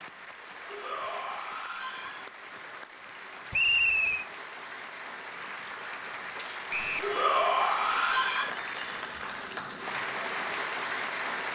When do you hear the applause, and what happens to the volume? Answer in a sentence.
You can hear the applause from 0.0 to 11.4 s, getting louder.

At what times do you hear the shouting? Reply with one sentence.
The shouting can be heard from 0.7 to 2.3 s and from 7.0 to 8.5 s.